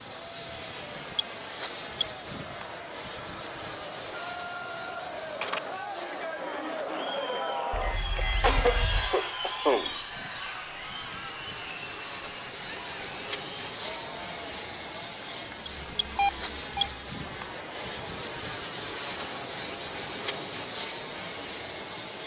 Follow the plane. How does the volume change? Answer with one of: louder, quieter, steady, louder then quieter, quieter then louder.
quieter then louder.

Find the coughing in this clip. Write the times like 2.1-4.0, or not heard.
8.2-9.9.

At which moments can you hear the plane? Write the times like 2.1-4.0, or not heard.
0.0-22.2.